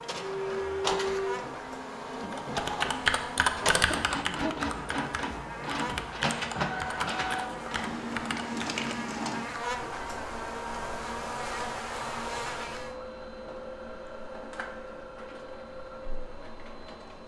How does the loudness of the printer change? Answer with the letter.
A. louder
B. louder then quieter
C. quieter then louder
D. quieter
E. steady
D.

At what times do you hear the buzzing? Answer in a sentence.
The buzzing can be heard from 0.0 to 12.9 s.